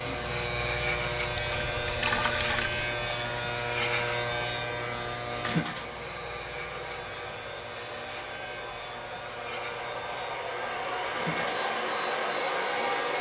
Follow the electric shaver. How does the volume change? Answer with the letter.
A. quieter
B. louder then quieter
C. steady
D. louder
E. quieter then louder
A.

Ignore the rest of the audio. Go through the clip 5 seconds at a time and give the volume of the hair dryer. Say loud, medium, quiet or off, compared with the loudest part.
medium, medium, loud.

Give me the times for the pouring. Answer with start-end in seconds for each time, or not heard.
1.3-2.9.